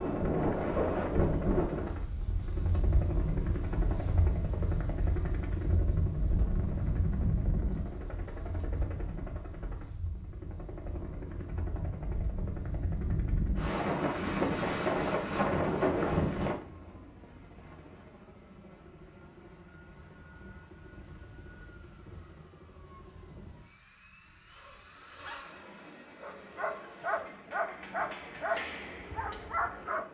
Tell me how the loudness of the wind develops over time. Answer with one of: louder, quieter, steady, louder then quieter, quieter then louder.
quieter then louder.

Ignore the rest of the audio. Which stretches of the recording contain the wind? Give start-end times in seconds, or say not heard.
0.0-16.6.